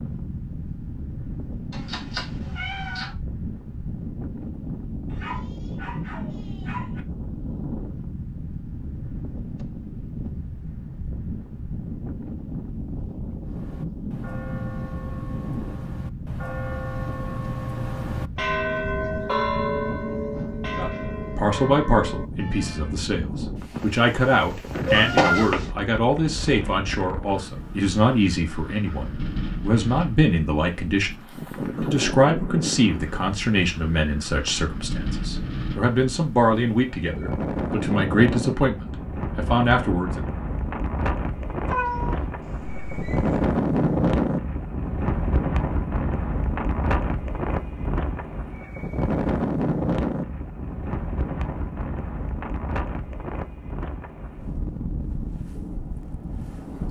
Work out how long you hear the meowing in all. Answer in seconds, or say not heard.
4 s.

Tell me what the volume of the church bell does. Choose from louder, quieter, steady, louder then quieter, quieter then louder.
louder then quieter.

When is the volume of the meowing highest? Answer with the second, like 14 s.
25 s.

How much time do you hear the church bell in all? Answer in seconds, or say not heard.
10 s.